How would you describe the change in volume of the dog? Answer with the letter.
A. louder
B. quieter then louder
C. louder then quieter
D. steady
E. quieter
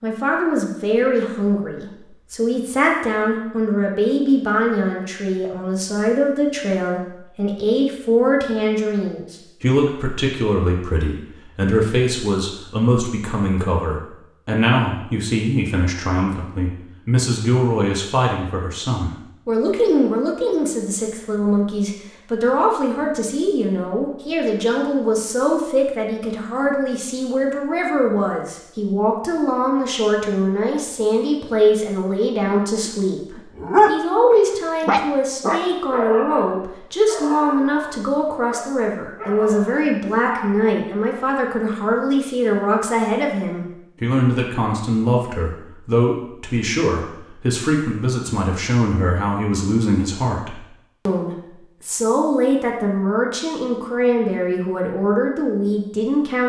E.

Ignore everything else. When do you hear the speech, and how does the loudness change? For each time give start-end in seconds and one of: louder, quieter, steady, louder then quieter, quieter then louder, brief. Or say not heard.
0.0-56.4 steady.